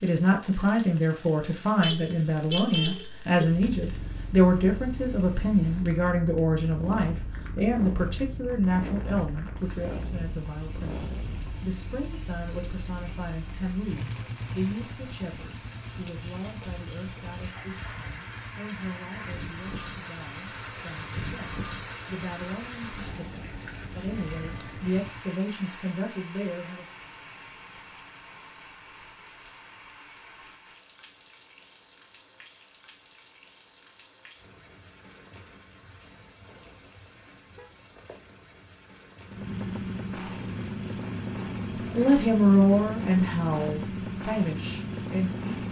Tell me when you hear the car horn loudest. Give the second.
3 s.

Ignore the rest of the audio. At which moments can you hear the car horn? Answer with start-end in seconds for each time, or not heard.
1.8-3.5, 24.1-24.9, 37.1-37.8.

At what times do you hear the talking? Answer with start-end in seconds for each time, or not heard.
0.0-26.9, 42.0-45.5.